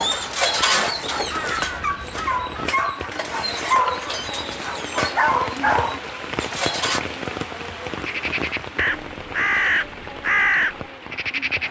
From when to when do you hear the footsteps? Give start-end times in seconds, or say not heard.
not heard.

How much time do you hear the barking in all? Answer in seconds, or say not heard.
7 s.